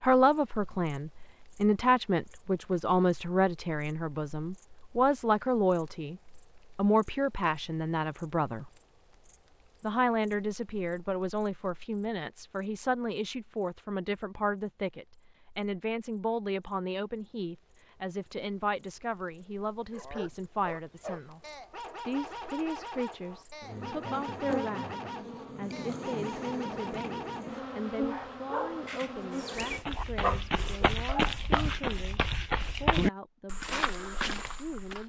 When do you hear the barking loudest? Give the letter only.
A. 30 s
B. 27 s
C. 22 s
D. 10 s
A.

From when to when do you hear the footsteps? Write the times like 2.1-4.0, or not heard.
29.6-35.0.